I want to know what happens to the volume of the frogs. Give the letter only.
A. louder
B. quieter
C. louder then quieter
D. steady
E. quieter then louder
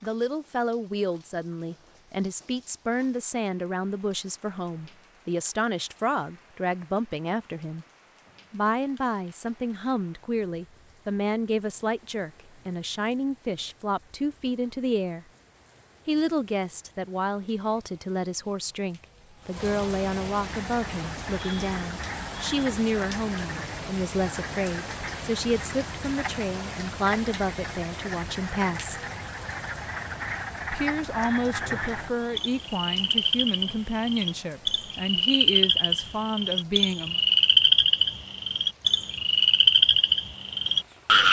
A.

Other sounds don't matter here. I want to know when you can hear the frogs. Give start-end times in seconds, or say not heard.
20.6-41.2.